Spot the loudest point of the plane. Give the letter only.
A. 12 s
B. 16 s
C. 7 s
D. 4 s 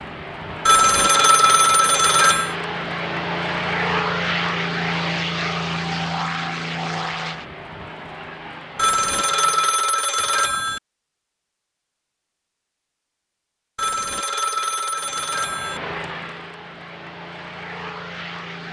D.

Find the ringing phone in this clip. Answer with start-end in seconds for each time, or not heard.
0.7-2.5, 8.8-10.8, 13.8-15.8.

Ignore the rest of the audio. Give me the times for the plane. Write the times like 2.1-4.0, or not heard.
0.0-9.8, 14.9-18.6.